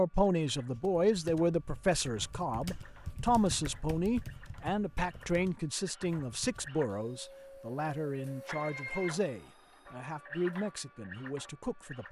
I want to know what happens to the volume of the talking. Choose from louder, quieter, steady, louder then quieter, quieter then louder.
quieter.